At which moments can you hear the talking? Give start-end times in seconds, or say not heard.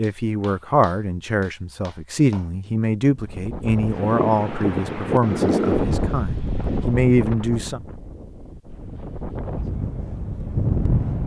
0.0-7.8.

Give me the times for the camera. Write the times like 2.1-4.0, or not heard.
not heard.